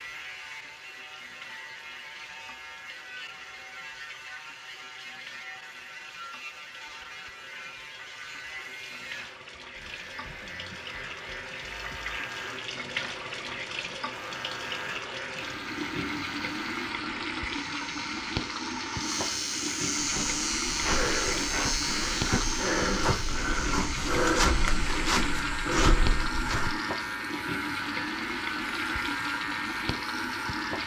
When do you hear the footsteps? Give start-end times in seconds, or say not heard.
19.9-26.7.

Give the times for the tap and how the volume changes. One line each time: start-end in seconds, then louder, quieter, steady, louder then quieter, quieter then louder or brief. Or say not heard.
0.0-30.8 louder.